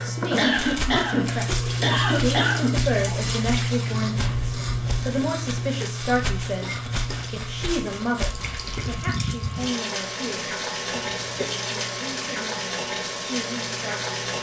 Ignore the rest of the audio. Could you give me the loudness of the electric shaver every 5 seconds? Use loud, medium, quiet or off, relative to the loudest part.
loud, medium, quiet.